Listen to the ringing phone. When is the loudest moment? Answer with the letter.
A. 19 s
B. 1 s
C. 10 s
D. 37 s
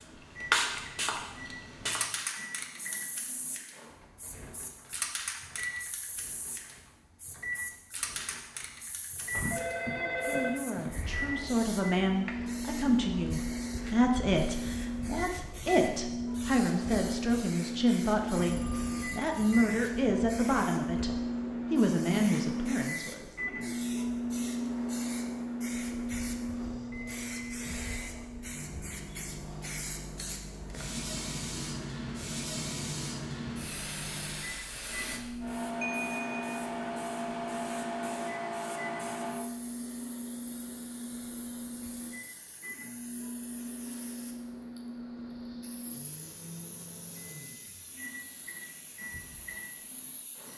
C.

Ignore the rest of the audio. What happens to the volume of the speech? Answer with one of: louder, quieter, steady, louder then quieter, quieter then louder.
steady.